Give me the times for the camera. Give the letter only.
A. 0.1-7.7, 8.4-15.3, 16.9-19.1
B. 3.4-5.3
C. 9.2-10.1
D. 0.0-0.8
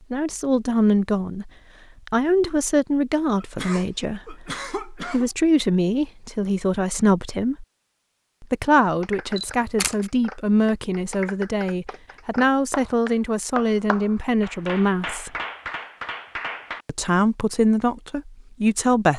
C.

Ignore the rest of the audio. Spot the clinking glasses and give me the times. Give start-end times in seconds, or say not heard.
not heard.